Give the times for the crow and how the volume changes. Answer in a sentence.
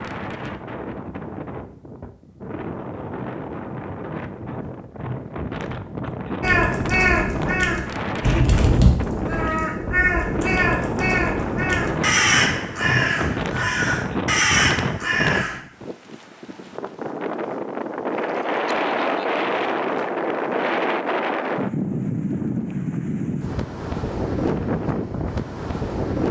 You can hear the crow from 6.4 to 15.6 s, at a steady volume.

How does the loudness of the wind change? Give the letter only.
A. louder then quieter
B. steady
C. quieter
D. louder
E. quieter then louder
D.